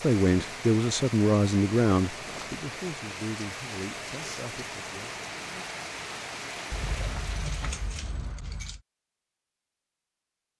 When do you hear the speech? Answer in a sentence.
You can hear the speech from 0.0 to 5.2 s.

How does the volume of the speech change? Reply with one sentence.
The volume of the speech goes down.